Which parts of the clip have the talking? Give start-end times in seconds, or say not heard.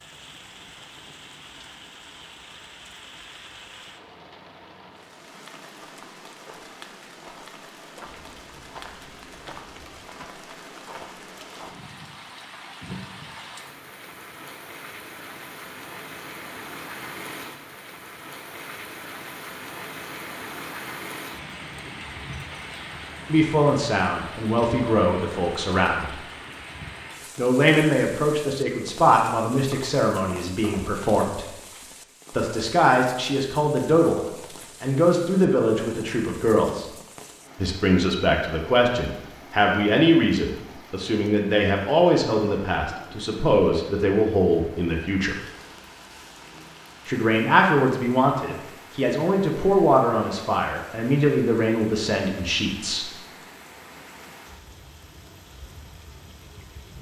23.2-26.1, 27.4-31.4, 32.4-36.9, 37.5-45.4, 47.0-53.1.